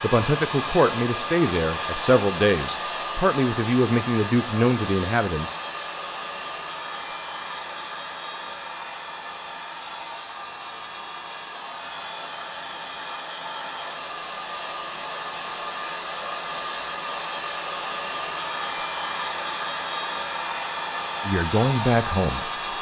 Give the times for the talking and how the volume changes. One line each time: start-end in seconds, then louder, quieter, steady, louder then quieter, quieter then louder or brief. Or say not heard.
0.0-5.5 steady
21.2-22.5 brief.